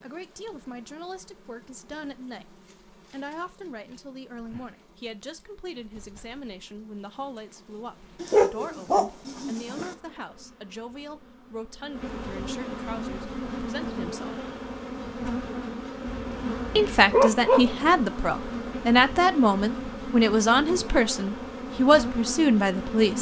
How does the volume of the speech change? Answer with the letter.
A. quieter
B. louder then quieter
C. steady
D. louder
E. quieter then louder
D.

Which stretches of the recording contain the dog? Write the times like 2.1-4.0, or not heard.
8.2-9.9, 16.1-17.8.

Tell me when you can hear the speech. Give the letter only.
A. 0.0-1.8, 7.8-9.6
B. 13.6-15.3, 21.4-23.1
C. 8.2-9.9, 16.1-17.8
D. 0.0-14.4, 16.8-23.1
D.